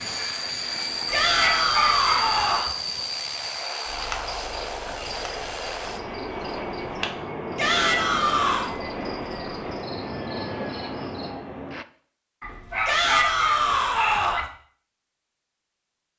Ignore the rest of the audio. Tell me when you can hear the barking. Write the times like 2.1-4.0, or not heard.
1.2-2.5, 12.4-14.4.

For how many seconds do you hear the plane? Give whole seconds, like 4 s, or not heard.
12 s.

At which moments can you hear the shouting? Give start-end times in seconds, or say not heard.
1.1-2.8, 7.5-8.8, 12.8-14.4.